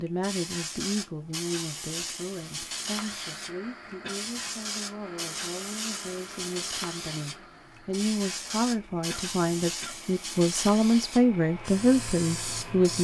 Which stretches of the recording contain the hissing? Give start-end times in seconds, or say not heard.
0.1-12.9.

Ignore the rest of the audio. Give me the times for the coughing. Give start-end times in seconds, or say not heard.
4.0-4.7, 9.1-10.0.